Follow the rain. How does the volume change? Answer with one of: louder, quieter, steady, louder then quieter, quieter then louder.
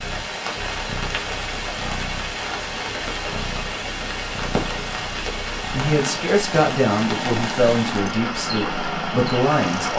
steady.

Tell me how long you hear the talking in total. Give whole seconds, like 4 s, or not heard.
4 s.